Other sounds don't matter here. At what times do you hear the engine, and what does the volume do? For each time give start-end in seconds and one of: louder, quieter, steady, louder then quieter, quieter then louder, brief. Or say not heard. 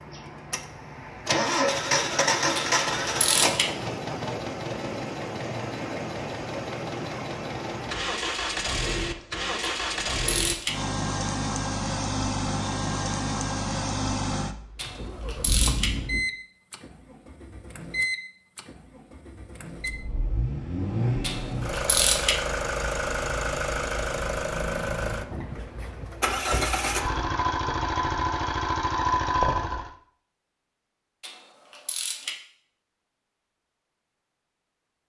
0.0-29.9 steady.